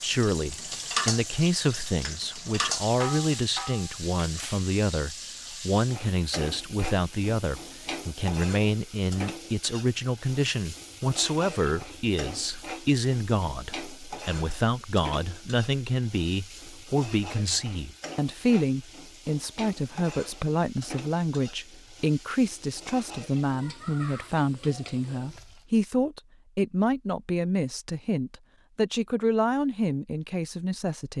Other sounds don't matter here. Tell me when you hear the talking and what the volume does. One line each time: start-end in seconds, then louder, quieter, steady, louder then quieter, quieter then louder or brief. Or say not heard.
0.0-31.1 steady.